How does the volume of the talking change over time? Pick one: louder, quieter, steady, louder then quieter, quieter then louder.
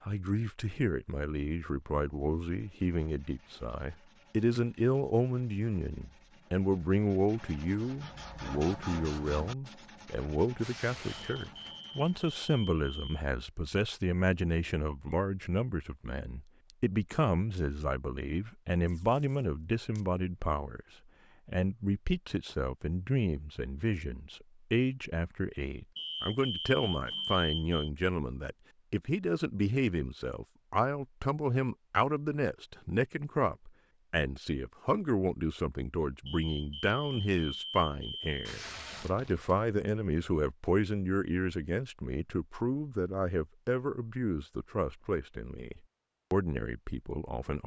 steady.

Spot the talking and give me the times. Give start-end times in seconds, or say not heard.
0.1-20.8, 21.4-47.6.